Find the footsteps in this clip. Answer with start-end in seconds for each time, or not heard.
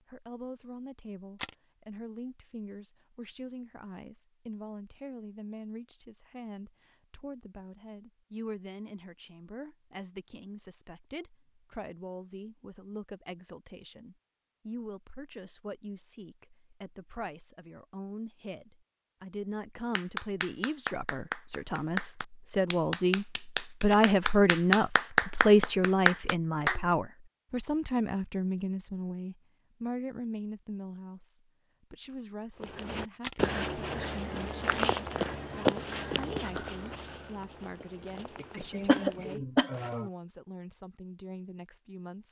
32.6-40.1.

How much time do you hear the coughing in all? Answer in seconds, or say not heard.
2 s.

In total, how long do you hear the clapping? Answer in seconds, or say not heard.
7 s.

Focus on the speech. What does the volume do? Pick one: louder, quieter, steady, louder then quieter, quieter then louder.
louder then quieter.